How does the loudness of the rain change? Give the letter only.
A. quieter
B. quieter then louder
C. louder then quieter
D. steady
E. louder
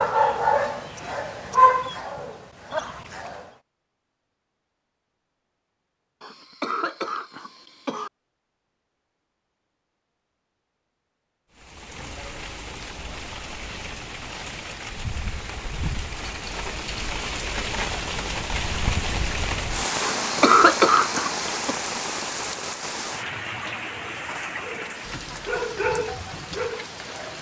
C.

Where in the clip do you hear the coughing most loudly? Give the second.
21 s.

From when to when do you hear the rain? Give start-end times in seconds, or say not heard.
11.5-27.3.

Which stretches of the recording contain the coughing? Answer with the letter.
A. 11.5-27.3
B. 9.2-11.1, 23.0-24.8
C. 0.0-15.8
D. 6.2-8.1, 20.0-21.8
D.